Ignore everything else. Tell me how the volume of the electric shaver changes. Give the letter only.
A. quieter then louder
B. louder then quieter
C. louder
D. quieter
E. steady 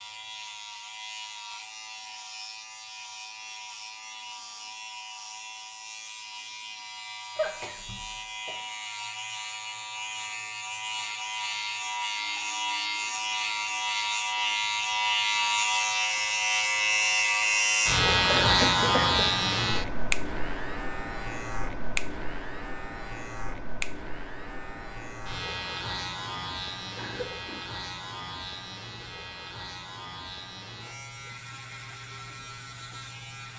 B.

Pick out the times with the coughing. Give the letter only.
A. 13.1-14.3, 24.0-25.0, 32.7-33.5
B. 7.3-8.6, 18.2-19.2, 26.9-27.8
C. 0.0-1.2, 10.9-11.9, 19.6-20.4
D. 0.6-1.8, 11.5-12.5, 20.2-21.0
B.